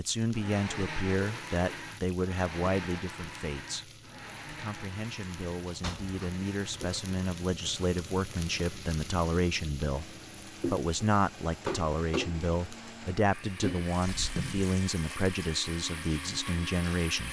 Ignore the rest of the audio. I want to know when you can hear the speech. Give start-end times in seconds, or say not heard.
0.0-17.2.